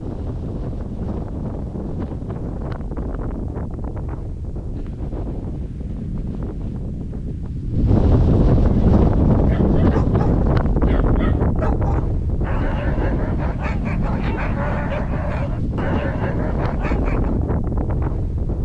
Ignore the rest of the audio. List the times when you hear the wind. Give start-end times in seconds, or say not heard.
0.0-18.6.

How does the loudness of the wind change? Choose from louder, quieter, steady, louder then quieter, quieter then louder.
louder then quieter.